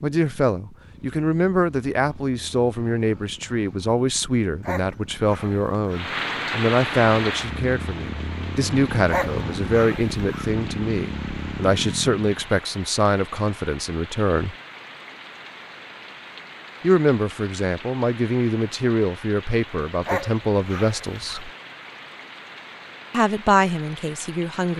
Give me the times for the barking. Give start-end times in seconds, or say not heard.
4.6-6.0, 9.1-10.5, 20.1-21.4.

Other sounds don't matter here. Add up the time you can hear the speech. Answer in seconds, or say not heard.
21 s.